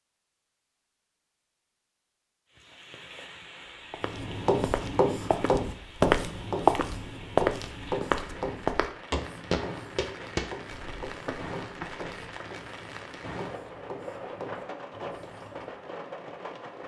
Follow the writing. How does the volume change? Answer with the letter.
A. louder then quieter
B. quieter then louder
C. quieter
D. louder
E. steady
C.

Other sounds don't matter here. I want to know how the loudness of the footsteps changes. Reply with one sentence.
The loudness of the footsteps goes up, then down.